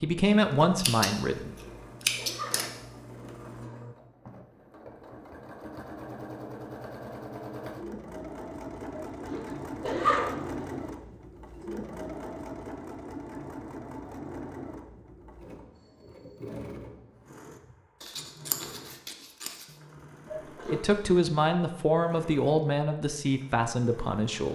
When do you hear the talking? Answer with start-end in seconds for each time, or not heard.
0.0-1.6, 20.6-24.4.